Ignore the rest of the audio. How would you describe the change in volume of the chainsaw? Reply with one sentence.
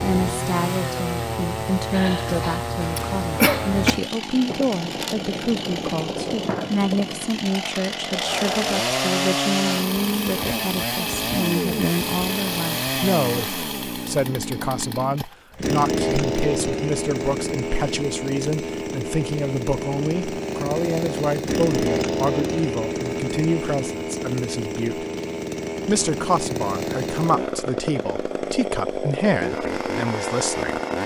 The volume of the chainsaw stays about the same.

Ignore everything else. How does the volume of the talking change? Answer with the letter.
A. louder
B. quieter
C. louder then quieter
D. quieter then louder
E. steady
E.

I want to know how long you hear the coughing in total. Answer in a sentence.
The coughing can be heard for 2 seconds in total.